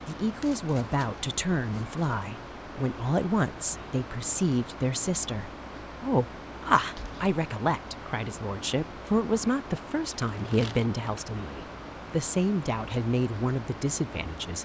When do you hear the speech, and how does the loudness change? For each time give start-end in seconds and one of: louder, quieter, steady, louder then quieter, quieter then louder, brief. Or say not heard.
0.1-14.6 steady.